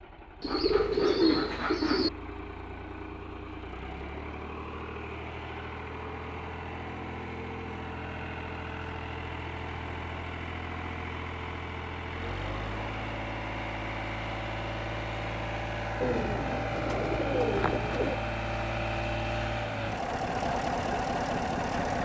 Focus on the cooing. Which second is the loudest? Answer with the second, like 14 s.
1 s.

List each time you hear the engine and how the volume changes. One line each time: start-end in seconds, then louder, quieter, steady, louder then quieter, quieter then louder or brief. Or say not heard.
0.0-21.9 louder.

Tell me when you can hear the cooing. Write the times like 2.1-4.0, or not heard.
0.4-2.1, 16.0-18.2.